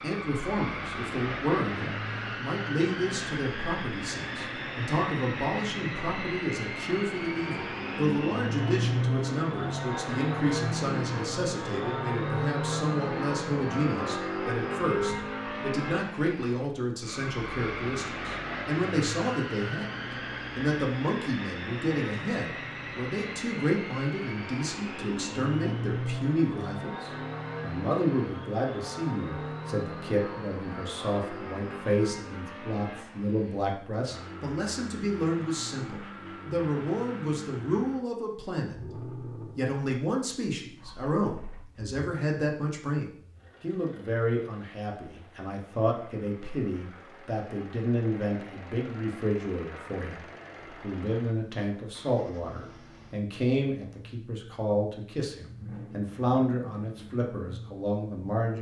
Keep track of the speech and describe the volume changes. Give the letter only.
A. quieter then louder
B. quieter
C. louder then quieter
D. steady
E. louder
D.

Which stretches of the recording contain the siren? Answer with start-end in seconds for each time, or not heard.
not heard.